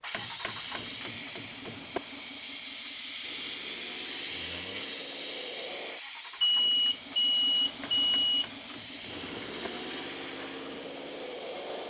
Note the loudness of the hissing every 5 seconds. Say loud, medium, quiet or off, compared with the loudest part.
loud, loud, medium.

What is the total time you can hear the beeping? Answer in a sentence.
The beeping can be heard for 2 seconds in total.